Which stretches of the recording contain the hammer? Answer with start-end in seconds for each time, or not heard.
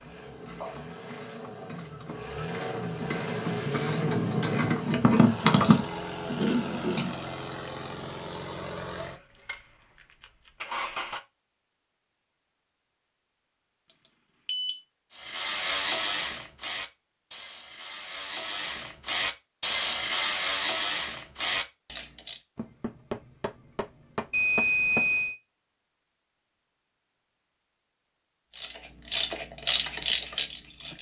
22.6-25.1.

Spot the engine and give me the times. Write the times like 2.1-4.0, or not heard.
0.0-11.2.